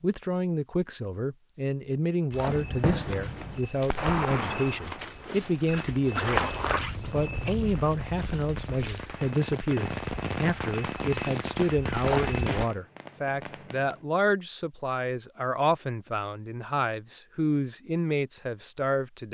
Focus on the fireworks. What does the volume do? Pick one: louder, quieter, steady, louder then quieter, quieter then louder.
quieter then louder.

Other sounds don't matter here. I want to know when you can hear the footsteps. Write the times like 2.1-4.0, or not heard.
2.3-12.7.